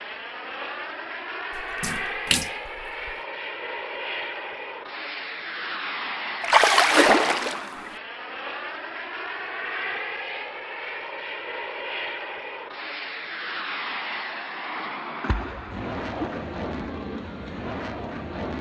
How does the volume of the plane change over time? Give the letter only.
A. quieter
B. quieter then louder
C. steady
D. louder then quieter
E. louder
C.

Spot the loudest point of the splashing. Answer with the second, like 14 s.
7 s.